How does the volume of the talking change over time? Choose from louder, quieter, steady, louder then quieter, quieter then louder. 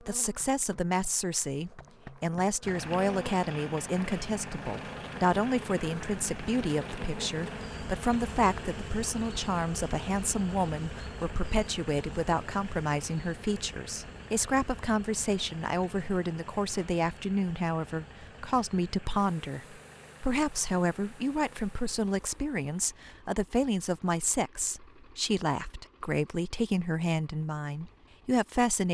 steady.